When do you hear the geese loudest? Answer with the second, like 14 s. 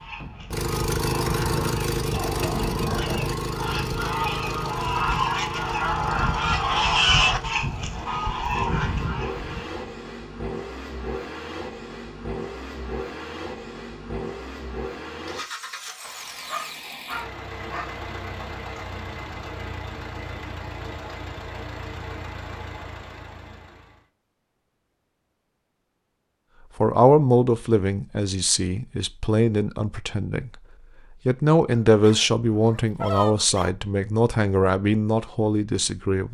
7 s.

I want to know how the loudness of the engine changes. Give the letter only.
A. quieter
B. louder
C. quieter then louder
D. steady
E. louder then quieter
A.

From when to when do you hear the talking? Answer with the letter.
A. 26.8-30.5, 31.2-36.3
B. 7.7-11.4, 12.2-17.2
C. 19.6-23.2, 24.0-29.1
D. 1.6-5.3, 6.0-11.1
A.